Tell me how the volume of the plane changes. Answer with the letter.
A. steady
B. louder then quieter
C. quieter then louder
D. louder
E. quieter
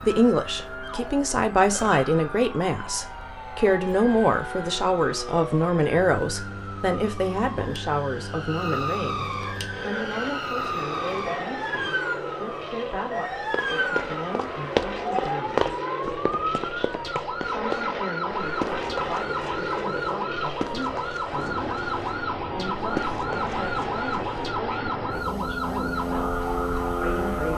D.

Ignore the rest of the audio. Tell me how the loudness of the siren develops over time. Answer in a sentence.
The volume of the siren goes up.